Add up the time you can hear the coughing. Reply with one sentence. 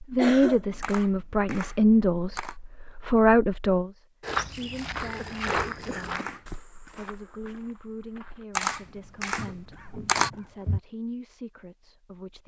You can hear the coughing for 3 seconds altogether.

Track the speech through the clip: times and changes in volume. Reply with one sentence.
The speech can be heard from 0.0 to 12.4 s, getting quieter.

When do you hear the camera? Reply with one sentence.
The camera can be heard from 0.8 to 2.5 s, from 5.5 to 6.5 s and from 8.6 to 10.3 s.